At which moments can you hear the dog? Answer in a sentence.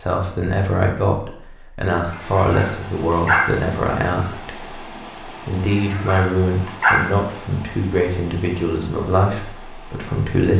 You can hear the dog from 2.1 to 3.5 s and from 5.7 to 7.0 s.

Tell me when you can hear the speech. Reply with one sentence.
You can hear the speech from 0.0 to 10.5 s.